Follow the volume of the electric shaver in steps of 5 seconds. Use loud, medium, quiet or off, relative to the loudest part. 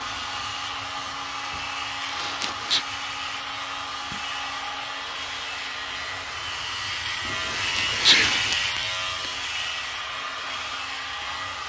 medium, loud, medium.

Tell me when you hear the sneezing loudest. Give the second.
8 s.